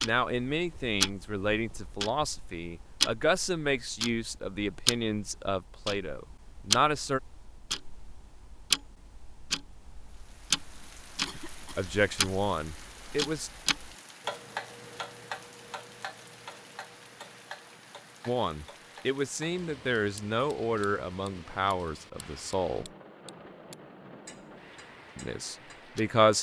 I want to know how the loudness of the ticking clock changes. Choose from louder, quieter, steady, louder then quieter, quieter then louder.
quieter.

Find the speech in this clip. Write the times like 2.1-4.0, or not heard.
0.0-7.2, 11.8-13.5, 18.2-22.9, 25.1-26.3.